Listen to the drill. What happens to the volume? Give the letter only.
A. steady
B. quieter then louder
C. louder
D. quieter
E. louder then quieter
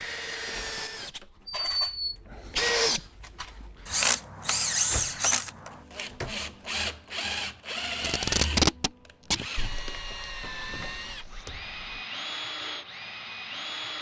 D.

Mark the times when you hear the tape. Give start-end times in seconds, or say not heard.
8.0-9.4.